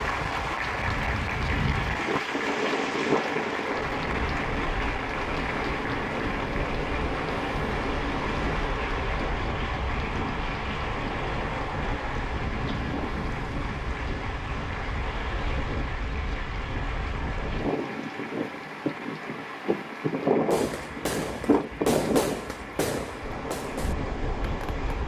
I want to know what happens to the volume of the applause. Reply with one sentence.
The volume of the applause goes down.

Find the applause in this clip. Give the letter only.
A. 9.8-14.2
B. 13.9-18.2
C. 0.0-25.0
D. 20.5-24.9
C.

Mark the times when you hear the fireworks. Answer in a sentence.
The fireworks can be heard from 20.5 to 24.9 s.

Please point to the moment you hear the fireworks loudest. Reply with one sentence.
The volume of the fireworks peaks at 22 seconds.